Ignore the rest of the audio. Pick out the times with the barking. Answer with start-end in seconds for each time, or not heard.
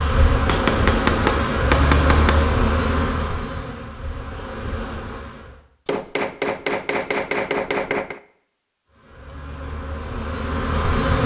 not heard.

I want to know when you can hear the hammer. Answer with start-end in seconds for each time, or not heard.
0.5-2.5, 5.8-8.2.